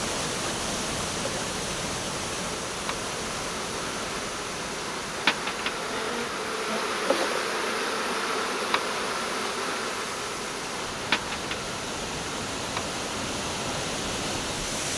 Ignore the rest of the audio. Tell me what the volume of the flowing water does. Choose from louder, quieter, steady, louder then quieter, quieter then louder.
quieter then louder.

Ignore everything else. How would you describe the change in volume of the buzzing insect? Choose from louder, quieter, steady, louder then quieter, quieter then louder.
louder then quieter.